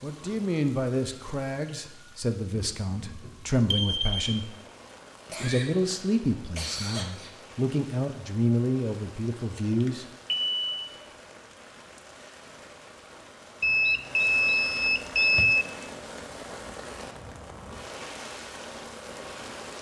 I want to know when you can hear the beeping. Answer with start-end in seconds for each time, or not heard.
3.7-4.3, 9.8-10.6, 13.6-15.7.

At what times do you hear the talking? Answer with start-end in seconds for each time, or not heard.
0.0-4.5, 5.2-10.1.